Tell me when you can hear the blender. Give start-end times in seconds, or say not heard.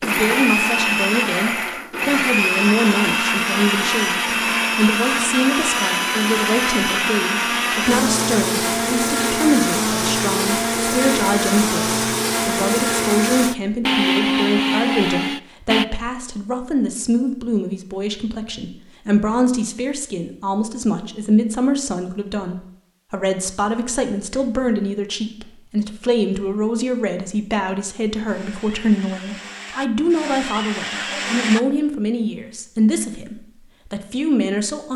0.0-15.8, 28.2-31.6.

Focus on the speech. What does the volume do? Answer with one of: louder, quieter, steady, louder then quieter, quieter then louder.
steady.